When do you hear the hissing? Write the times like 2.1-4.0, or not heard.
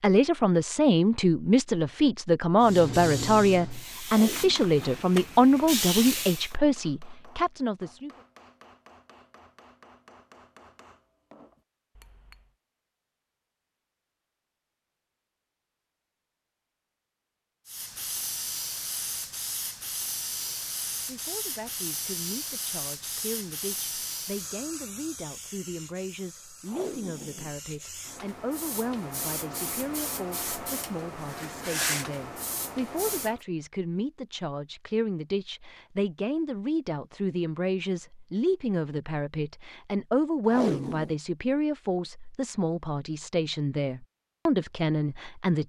2.6-6.5, 17.6-33.4.